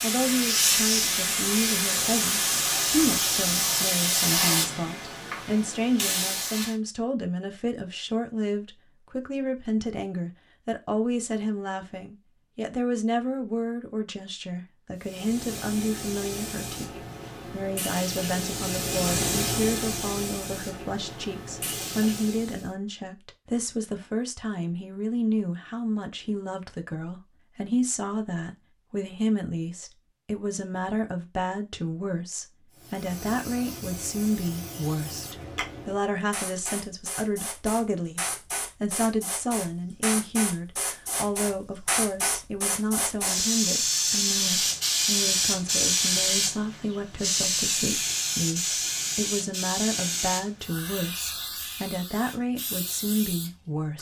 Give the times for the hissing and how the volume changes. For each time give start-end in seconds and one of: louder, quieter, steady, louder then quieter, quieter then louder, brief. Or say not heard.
0.0-6.8 quieter
14.9-22.7 louder then quieter
32.7-53.9 louder then quieter.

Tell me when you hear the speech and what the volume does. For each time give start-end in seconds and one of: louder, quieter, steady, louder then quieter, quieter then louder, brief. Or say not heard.
0.0-53.9 steady.